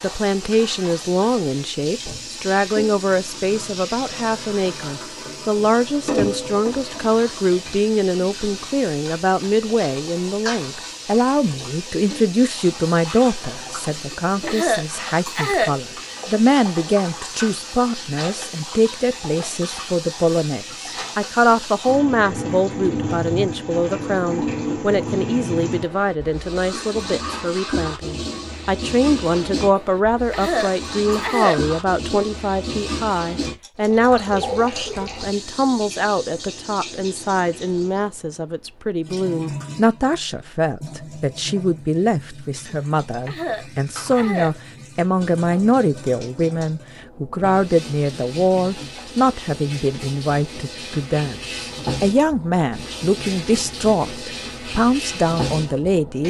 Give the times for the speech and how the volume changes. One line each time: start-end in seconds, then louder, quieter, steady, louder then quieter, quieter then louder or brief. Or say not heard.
0.0-56.2 steady.